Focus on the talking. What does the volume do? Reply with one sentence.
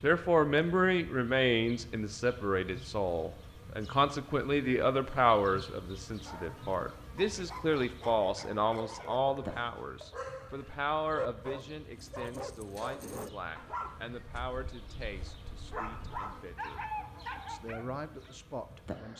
The volume of the talking goes down.